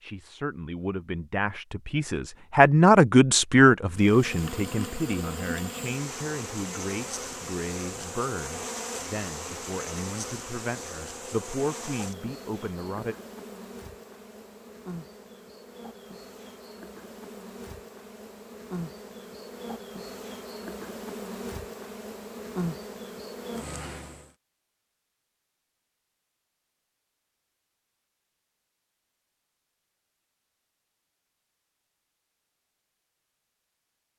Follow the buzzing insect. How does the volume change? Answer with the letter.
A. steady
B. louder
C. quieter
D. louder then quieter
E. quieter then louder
E.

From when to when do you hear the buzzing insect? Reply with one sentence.
The buzzing insect can be heard from 3.9 to 24.3 s.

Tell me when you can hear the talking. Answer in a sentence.
The talking can be heard from 0.0 to 13.2 s.